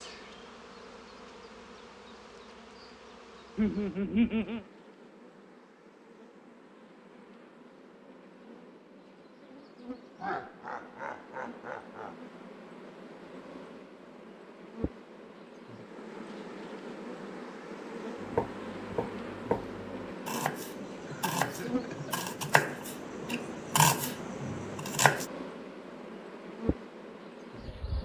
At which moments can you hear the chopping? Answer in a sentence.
You can hear the chopping from 18.2 to 25.2 s.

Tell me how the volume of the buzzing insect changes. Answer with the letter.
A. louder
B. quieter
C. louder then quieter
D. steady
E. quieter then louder
A.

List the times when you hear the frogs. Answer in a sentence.
You can't hear the frogs here.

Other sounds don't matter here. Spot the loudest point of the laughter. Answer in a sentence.
The loudest moment of the laughter is at 4 seconds.